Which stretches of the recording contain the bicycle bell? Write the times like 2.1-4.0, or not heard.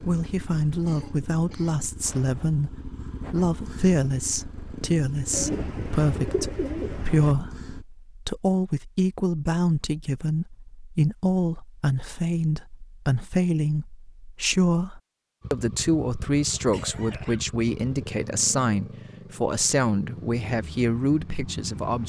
not heard.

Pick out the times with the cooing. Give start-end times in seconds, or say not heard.
5.3-7.3.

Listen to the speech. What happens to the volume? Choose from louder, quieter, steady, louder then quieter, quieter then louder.
steady.